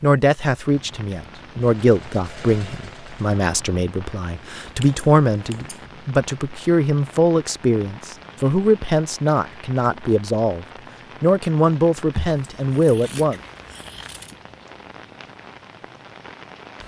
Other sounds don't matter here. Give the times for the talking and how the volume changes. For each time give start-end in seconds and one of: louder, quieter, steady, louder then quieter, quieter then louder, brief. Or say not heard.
0.0-13.4 steady.